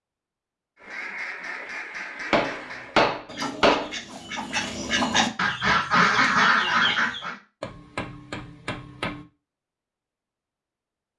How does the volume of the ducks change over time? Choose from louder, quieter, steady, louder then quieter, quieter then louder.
louder.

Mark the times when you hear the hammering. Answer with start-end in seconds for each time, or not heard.
2.3-4.0, 7.6-9.2.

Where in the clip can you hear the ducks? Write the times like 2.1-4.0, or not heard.
0.8-7.4.